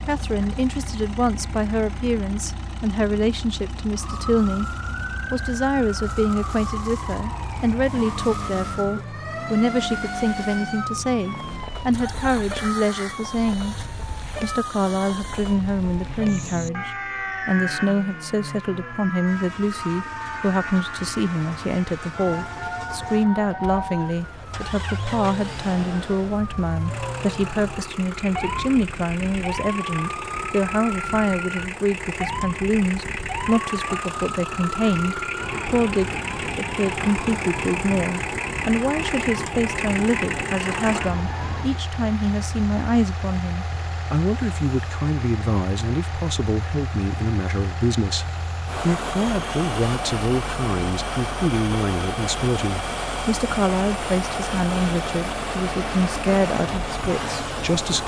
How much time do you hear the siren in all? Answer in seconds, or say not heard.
38 s.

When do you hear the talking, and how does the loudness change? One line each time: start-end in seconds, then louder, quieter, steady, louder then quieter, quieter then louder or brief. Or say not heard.
0.0-58.0 steady.